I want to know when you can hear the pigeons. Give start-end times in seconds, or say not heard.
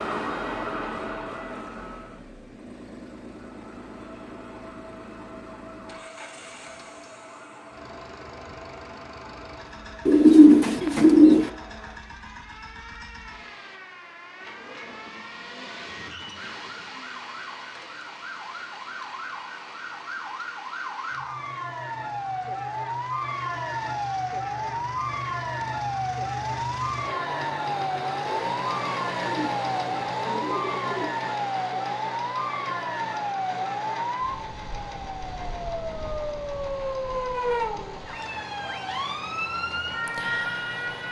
10.1-11.5, 29.2-31.1.